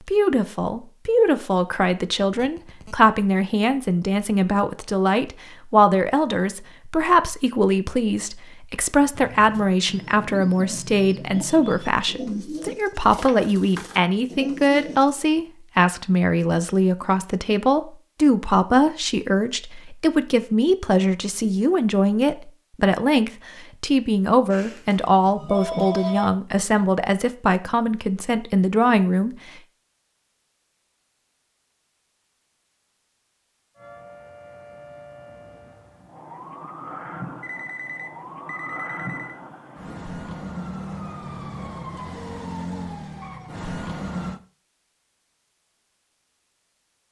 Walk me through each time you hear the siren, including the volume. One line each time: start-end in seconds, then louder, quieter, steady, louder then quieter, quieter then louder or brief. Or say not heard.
33.8-44.4 louder.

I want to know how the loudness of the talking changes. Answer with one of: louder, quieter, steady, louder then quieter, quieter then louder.
steady.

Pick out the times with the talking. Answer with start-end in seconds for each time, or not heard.
0.0-29.6.